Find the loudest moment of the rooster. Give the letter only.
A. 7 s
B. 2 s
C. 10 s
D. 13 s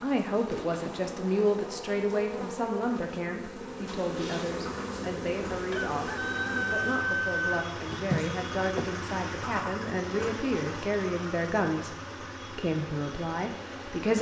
A.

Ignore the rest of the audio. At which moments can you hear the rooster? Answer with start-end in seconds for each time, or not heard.
5.7-7.4.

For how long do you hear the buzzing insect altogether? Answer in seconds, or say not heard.
14 s.